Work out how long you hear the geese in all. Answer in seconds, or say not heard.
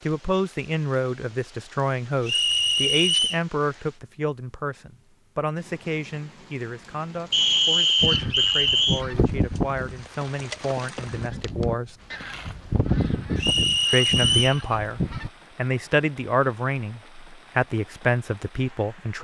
7 s.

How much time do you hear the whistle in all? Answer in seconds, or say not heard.
4 s.